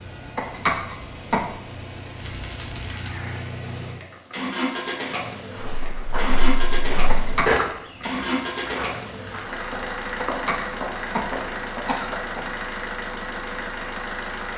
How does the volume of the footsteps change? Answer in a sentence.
The loudness of the footsteps goes up, then down.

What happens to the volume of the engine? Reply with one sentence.
The loudness of the engine goes up.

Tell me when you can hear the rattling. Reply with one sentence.
You can hear the rattling from 2.1 to 3.1 s.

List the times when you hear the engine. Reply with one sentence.
You can hear the engine from 0.0 to 14.5 s.